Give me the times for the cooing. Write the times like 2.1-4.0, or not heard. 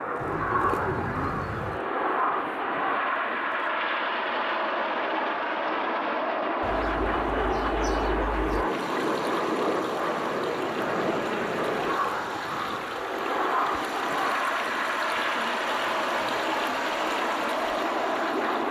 0.1-1.8, 6.6-8.7, 15.2-16.9.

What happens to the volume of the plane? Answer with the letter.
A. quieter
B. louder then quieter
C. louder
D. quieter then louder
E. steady
E.